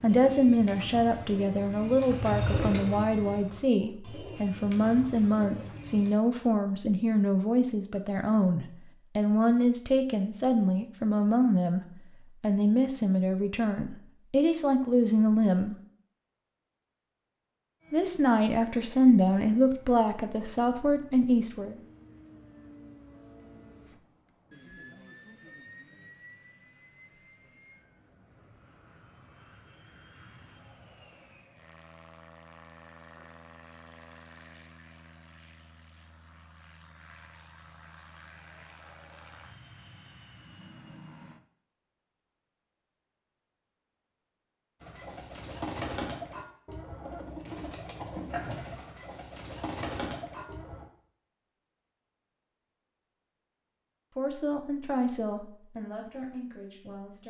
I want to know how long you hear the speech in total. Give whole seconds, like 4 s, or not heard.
23 s.